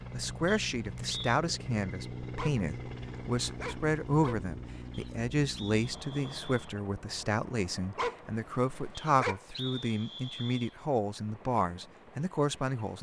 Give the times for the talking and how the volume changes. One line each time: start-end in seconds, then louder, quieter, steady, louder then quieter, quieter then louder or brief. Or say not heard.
0.1-12.9 steady.